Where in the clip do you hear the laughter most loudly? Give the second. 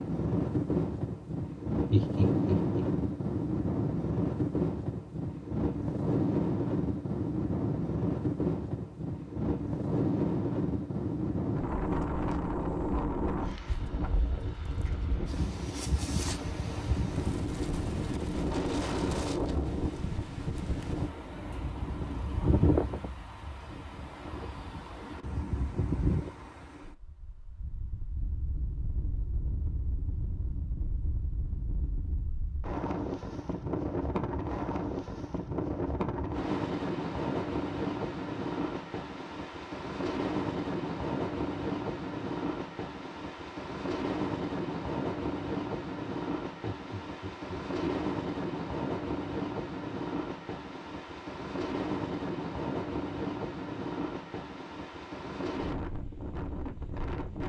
2 s.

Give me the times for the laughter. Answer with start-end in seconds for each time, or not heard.
1.9-2.9, 46.6-48.0.